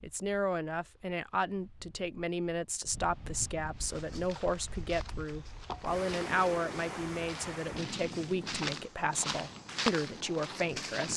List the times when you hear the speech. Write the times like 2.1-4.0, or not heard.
0.0-11.1.